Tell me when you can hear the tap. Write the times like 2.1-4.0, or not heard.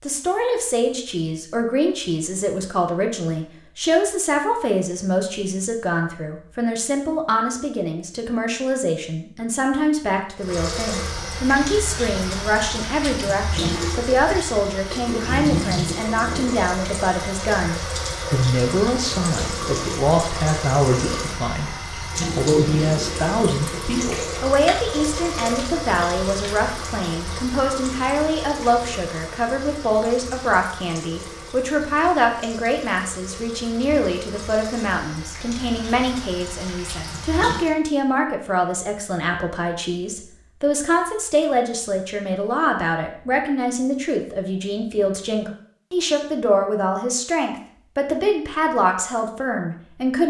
10.3-37.8.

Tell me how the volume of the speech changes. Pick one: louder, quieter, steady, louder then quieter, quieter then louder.
steady.